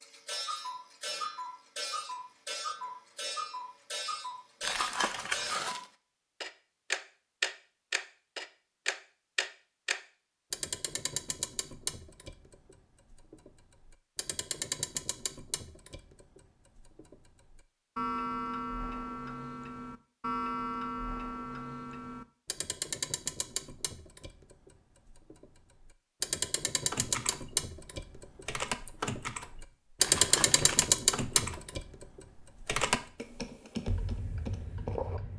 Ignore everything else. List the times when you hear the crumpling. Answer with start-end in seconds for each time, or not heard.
4.6-5.8, 30.0-30.8.